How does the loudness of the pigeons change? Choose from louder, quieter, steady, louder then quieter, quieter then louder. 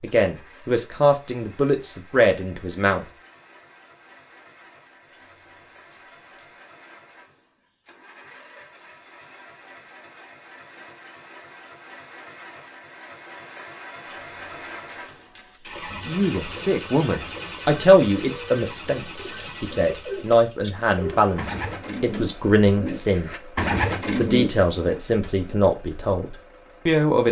louder.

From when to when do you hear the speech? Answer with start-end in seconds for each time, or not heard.
0.0-3.0, 16.1-23.4, 24.1-27.2.